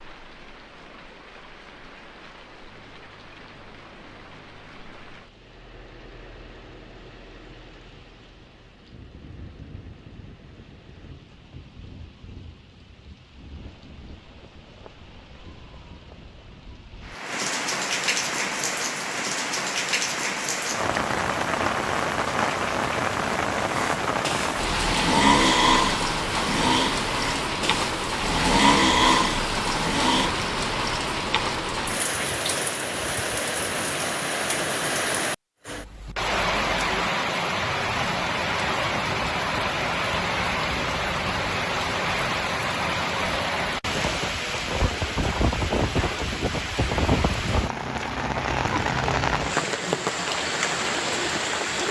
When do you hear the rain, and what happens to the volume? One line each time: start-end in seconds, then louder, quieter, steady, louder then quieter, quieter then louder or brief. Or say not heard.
0.0-51.8 louder.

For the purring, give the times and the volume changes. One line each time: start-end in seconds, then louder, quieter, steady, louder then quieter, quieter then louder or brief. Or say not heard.
not heard.